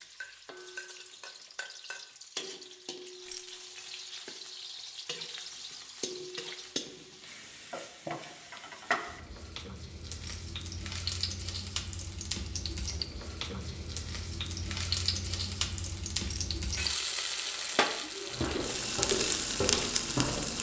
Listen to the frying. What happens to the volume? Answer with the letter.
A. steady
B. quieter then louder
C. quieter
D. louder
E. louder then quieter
D.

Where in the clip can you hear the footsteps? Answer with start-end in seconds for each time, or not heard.
18.3-20.5.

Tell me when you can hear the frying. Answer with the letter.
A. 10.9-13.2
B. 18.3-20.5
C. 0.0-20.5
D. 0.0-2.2
C.